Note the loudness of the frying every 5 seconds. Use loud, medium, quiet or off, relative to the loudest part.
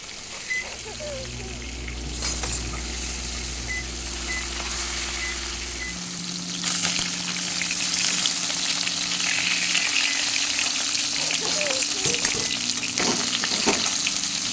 medium, loud, loud.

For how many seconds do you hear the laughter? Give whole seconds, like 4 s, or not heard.
2 s.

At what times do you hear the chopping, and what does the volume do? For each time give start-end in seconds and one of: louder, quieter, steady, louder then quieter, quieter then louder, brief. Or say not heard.
not heard.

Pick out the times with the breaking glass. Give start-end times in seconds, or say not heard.
2.2-2.6, 11.4-11.9.